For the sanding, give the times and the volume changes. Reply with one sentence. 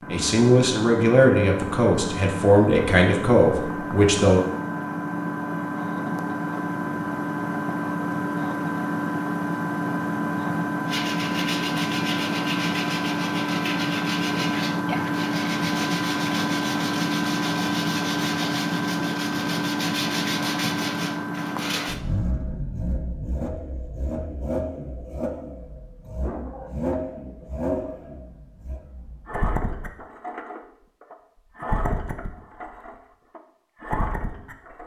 You can hear the sanding from 10.8 to 22.0 s, at a steady volume.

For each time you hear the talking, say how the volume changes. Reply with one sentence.
The talking can be heard from 0.1 to 4.5 s, at a steady volume.